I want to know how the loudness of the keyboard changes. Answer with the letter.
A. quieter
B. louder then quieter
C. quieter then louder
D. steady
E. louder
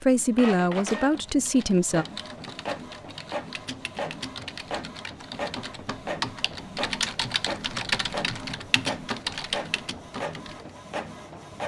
E.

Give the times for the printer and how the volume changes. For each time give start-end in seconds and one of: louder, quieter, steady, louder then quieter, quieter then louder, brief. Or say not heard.
0.1-11.6 steady.